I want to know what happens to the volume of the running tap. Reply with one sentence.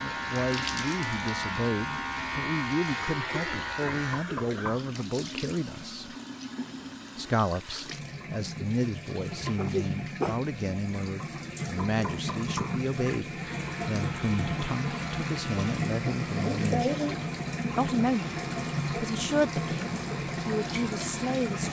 The loudness of the running tap goes up.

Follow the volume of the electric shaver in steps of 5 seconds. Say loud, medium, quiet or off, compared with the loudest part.
loud, off, medium, medium, medium.